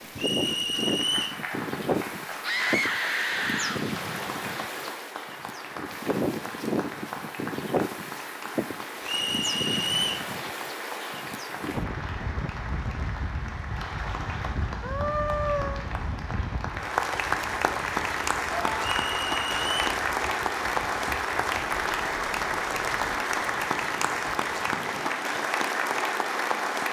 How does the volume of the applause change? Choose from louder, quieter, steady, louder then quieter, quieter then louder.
louder.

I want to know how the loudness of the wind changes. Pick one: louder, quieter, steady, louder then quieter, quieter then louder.
quieter.